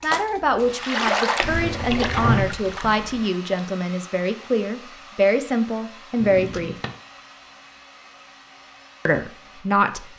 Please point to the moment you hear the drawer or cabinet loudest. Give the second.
2 s.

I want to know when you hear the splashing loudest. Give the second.
1 s.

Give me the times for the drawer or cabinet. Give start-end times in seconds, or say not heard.
1.4-3.2, 6.2-6.9.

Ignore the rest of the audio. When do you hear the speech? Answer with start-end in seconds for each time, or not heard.
0.0-6.8, 9.1-10.1.